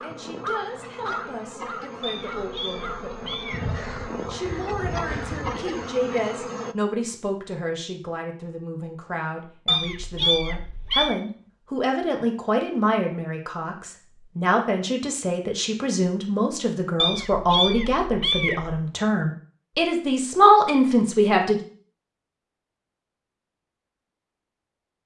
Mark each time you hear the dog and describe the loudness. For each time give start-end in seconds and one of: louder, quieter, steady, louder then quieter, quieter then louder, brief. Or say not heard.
not heard.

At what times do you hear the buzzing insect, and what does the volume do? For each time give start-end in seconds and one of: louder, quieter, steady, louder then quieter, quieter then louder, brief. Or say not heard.
0.0-6.8 louder.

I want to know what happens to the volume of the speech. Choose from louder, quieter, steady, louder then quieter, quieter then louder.
louder.